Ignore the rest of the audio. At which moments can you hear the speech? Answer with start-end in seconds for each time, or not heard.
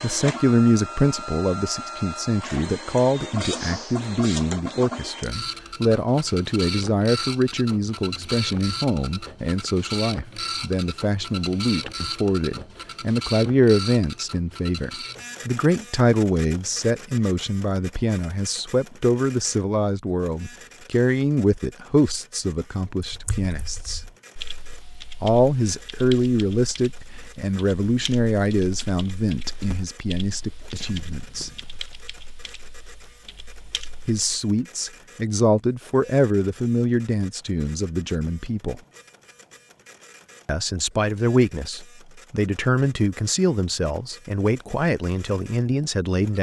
0.0-24.0, 25.2-31.5, 34.0-38.8, 40.5-46.3.